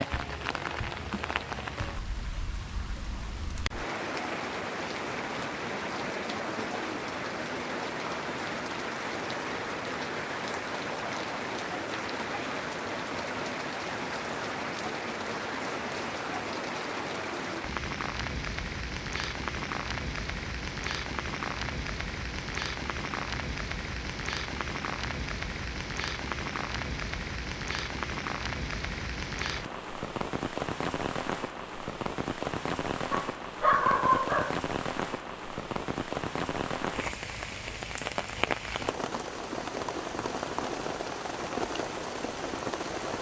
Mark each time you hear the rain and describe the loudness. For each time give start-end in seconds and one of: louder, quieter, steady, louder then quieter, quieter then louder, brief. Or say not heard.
0.0-43.1 steady.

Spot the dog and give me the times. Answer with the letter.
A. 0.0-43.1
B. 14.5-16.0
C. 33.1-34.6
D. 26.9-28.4
C.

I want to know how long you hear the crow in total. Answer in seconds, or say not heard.
not heard.